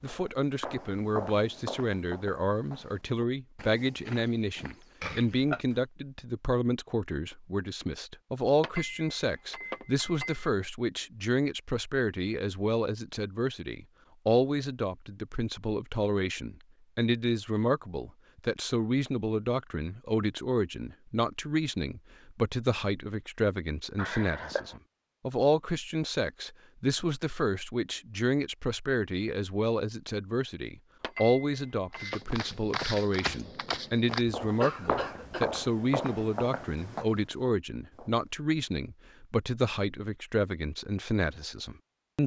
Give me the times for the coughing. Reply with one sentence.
You can hear the coughing from 5.0 to 5.6 s, from 23.9 to 24.8 s and from 34.6 to 35.5 s.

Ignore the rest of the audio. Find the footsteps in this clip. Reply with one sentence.
You can hear the footsteps from 0.0 to 5.8 s and from 31.9 to 38.2 s.